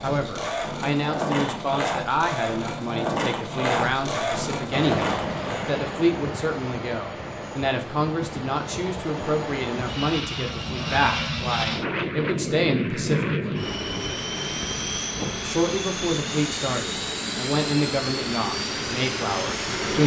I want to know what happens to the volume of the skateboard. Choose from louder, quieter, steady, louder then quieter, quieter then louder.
steady.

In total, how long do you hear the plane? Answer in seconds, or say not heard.
15 s.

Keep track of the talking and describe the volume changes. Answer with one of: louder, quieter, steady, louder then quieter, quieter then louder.
steady.